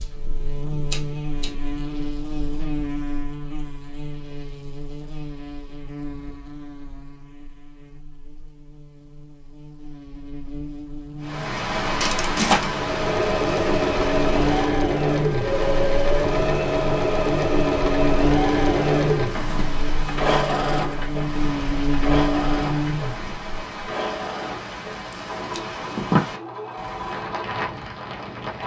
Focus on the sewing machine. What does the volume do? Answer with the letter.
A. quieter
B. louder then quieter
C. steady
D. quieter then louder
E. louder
A.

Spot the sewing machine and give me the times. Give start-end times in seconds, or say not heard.
12.7-28.6.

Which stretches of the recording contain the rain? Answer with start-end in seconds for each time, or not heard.
11.2-28.6.